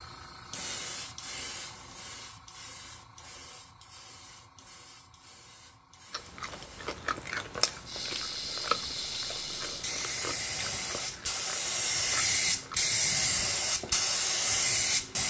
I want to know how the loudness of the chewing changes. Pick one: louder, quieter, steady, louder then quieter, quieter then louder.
quieter.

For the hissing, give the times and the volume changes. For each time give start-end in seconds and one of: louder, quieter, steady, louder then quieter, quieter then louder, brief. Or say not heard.
0.0-15.2 quieter then louder.